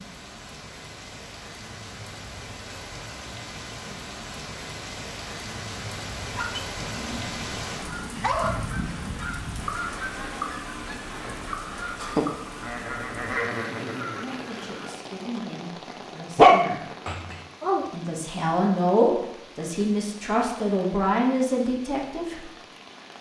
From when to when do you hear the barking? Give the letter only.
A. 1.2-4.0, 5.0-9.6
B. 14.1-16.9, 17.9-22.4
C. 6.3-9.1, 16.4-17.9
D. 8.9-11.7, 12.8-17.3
C.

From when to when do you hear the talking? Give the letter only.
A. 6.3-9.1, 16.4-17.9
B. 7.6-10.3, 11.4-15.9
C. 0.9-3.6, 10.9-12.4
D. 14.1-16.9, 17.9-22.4
D.